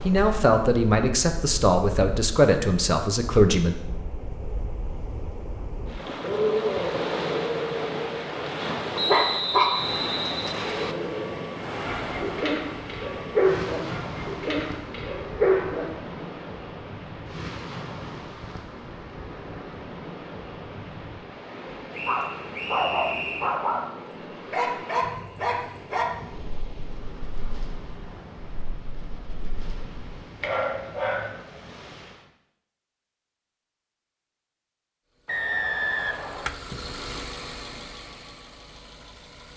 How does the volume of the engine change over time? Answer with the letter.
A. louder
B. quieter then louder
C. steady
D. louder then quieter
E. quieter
D.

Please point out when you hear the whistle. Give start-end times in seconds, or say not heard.
8.9-10.9, 21.9-23.6, 35.2-36.5.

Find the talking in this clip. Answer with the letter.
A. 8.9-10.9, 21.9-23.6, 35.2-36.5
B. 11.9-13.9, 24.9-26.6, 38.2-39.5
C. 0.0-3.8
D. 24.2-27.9
C.